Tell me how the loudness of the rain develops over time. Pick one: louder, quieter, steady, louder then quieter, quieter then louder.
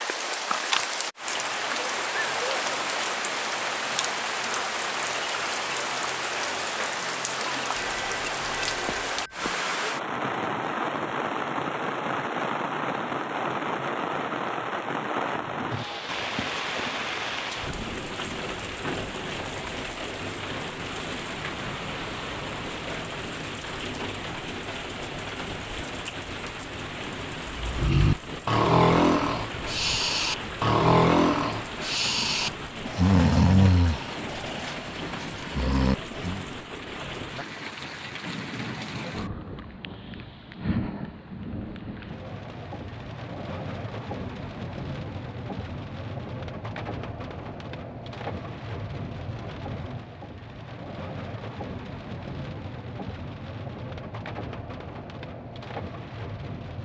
quieter.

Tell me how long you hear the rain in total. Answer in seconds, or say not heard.
57 s.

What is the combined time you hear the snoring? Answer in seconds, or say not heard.
9 s.